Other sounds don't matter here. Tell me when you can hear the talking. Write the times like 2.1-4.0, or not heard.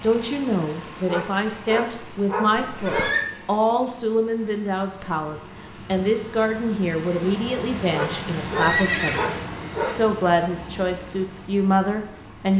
0.0-12.5.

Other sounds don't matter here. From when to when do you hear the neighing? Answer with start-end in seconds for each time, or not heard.
2.5-3.2, 8.6-10.0.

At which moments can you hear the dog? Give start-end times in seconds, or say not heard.
1.1-3.1, 7.9-9.9.